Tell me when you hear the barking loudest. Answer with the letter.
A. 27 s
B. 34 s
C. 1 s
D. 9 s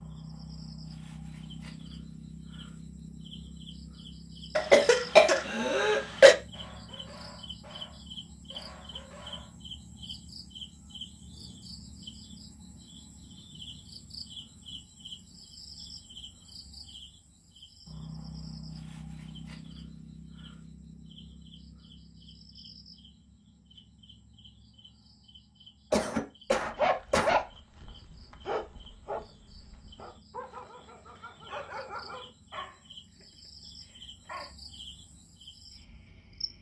A.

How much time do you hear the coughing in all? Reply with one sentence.
The coughing can be heard for 3 seconds in total.